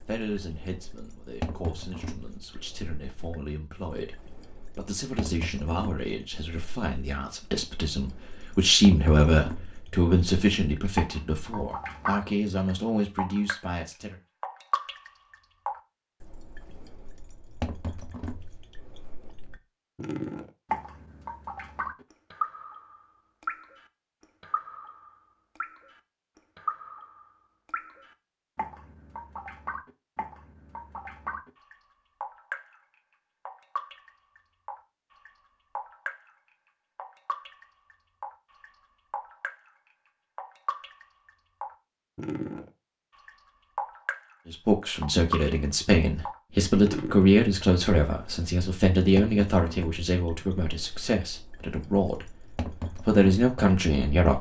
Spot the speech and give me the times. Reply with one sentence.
You can hear the speech from 0.0 to 14.2 s, from 44.5 to 52.4 s and from 53.0 to 54.3 s.